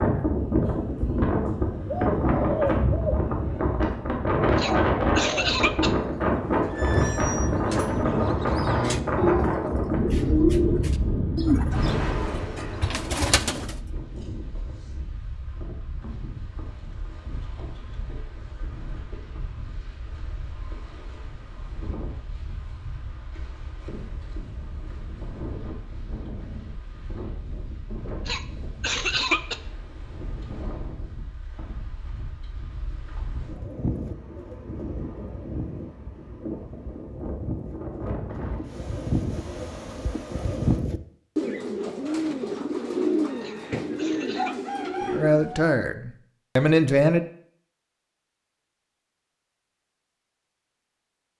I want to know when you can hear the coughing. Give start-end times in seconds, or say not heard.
4.5-6.0, 28.2-29.6, 43.4-44.5.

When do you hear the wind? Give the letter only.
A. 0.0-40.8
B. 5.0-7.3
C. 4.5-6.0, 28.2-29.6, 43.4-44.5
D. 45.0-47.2
A.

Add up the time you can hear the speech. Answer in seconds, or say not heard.
2 s.